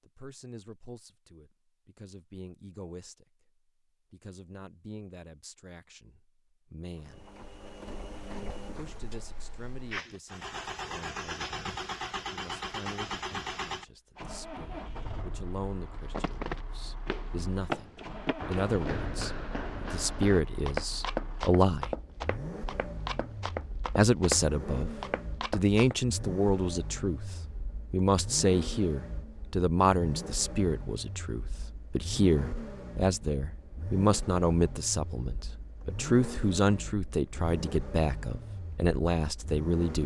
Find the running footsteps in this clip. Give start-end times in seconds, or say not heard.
15.9-25.9.